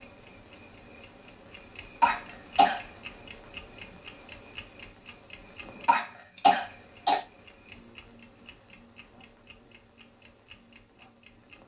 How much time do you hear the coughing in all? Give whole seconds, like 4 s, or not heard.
2 s.